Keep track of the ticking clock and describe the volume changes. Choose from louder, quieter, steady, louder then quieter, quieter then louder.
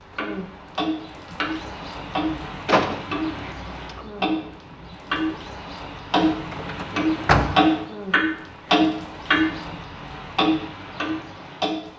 louder.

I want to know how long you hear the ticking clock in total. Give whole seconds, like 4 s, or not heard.
11 s.